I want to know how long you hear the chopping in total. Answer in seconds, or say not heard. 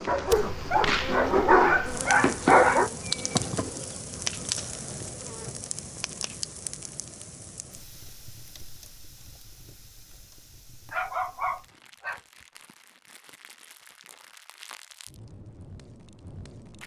not heard.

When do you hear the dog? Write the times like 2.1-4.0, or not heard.
0.1-2.9, 10.9-12.2.